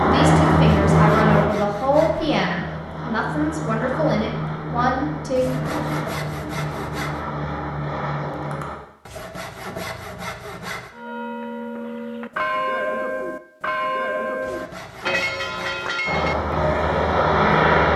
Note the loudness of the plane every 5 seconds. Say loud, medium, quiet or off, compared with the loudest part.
loud, medium, off, loud.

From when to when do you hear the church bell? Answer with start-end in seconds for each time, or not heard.
10.9-16.9.